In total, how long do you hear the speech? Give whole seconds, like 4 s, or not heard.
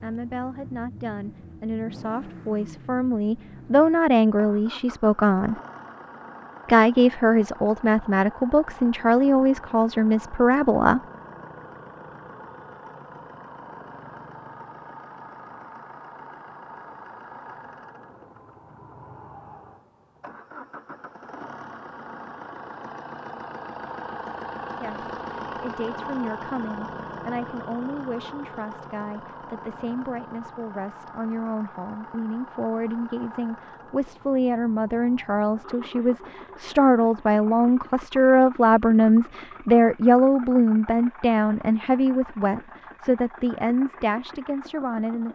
30 s.